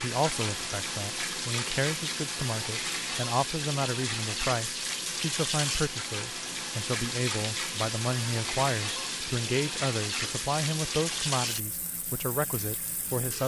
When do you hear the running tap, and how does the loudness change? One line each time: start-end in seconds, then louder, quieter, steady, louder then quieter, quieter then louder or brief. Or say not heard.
0.0-13.4 steady.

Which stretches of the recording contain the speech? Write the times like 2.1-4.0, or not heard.
0.0-13.4.